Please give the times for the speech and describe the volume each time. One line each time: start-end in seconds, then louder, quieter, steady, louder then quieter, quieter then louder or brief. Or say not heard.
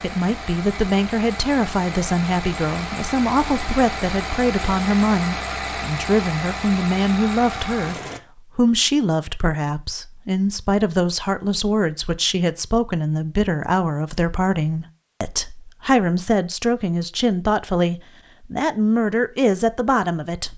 0.0-20.5 steady.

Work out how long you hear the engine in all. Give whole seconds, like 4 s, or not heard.
8 s.